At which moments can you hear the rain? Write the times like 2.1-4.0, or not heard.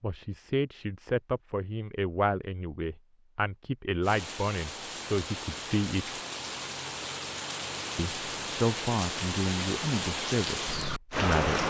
4.0-11.6.